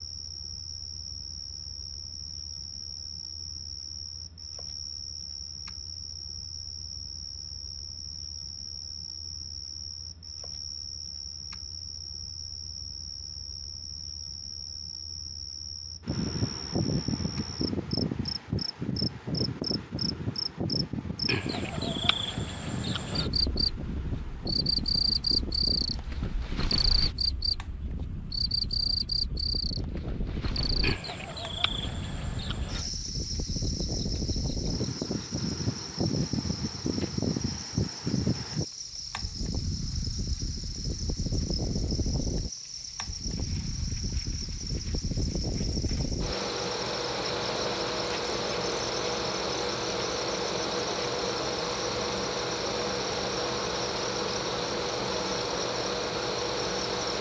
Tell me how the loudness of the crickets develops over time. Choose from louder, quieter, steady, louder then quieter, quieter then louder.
louder then quieter.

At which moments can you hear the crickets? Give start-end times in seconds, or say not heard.
0.0-57.1.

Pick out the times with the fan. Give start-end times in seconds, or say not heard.
16.1-57.1.